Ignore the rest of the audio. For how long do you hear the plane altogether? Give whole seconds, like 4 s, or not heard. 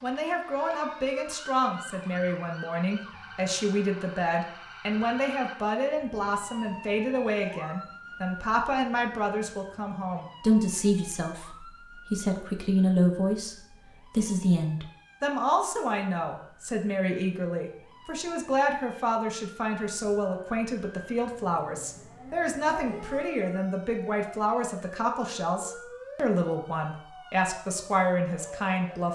not heard.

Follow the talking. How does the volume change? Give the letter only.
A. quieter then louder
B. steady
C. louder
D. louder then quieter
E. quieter
B.